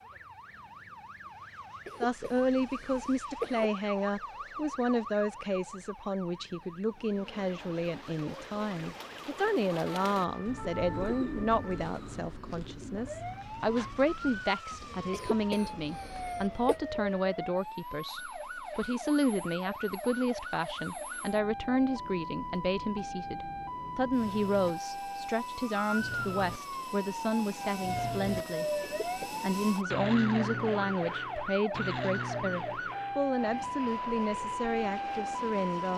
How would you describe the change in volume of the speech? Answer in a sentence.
The loudness of the speech stays about the same.